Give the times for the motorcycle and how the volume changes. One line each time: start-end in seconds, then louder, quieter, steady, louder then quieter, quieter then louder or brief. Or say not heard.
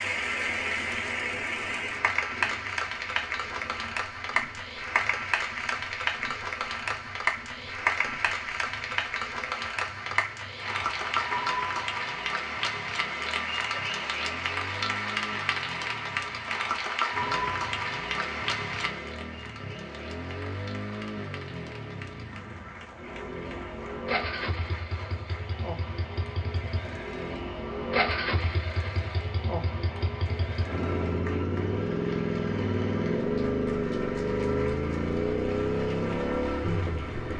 0.0-37.3 louder.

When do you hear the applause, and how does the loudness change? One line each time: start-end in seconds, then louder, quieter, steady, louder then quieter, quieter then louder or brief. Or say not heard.
0.0-37.3 quieter.